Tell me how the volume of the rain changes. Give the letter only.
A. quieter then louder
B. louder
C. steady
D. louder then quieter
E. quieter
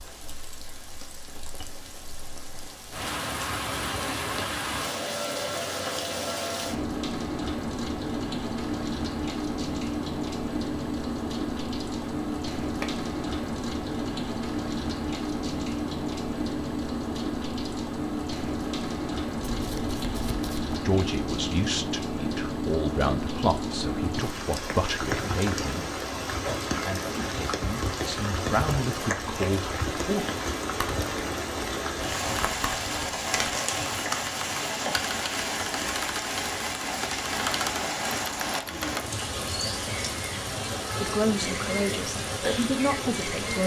C.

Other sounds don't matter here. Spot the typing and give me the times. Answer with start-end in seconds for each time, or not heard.
30.7-39.0.